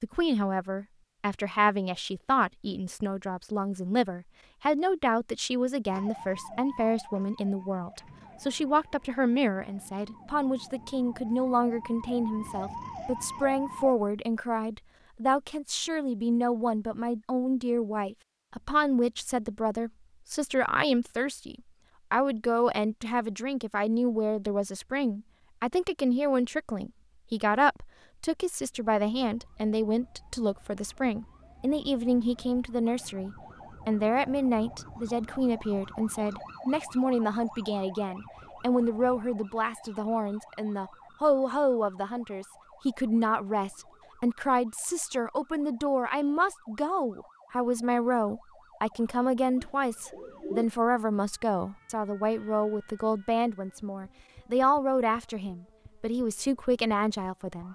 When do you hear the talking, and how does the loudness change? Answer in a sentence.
The talking can be heard from 0.0 to 57.6 s, at a steady volume.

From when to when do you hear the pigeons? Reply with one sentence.
The pigeons can be heard from 49.5 to 50.6 s.